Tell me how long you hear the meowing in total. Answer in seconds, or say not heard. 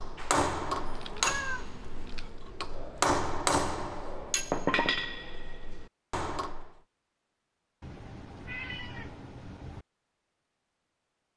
4 s.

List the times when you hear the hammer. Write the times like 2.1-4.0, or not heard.
0.0-6.8.